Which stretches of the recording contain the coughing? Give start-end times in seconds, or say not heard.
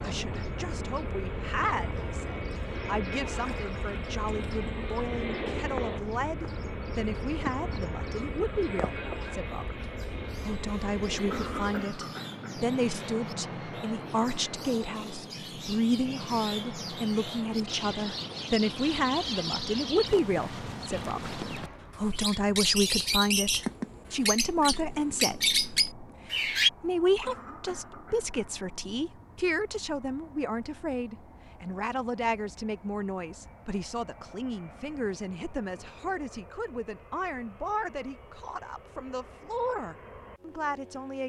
11.3-12.6, 27.2-28.4.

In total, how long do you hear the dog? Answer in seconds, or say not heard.
not heard.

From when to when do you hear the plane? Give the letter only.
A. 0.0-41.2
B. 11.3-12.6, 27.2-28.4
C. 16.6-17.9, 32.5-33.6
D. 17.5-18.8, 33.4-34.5
A.